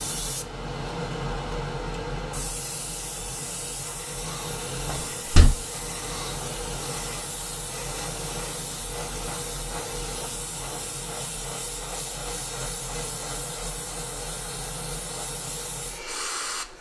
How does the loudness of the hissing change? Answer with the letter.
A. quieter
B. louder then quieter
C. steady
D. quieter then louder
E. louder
C.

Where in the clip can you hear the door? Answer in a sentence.
You can hear the door from 4.8 to 5.5 s.